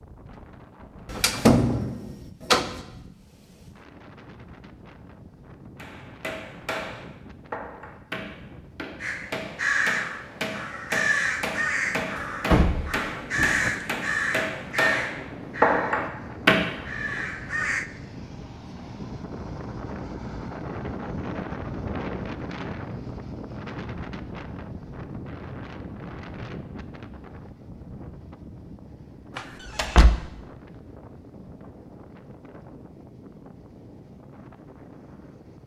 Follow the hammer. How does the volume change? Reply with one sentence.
The volume of the hammer goes up.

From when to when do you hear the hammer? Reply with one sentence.
You can hear the hammer from 5.8 to 16.6 s.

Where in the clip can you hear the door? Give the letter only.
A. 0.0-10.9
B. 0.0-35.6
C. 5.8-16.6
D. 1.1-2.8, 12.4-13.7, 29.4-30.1
D.